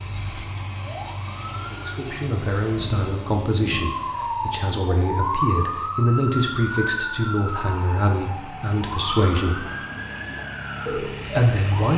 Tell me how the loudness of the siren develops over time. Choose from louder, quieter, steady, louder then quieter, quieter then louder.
louder then quieter.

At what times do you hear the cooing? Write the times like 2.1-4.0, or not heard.
9.6-11.7.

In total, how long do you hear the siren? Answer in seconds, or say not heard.
12 s.